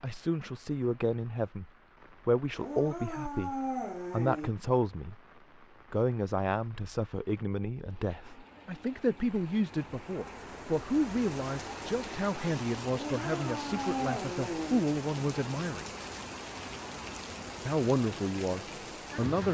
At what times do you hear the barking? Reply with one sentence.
The barking can be heard from 2.5 to 4.5 s and from 12.9 to 14.8 s.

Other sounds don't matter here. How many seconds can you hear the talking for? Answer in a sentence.
The talking can be heard for 17 seconds in total.